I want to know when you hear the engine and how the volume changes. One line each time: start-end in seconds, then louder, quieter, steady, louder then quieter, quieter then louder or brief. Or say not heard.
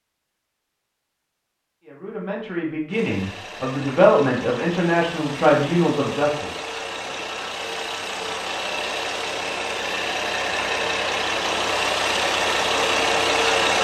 2.9-13.7 louder.